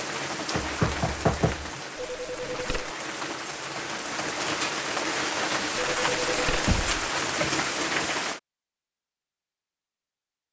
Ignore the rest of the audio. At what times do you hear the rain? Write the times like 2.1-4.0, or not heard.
0.0-8.4.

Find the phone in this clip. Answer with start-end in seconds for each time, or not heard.
1.9-3.0, 5.8-6.7.